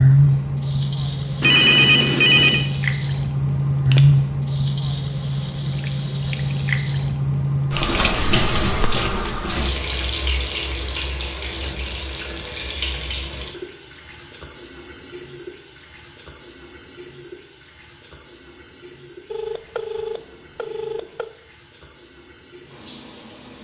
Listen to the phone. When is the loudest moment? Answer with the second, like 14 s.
2 s.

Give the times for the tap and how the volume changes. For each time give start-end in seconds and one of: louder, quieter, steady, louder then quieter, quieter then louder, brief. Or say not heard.
0.0-23.5 quieter.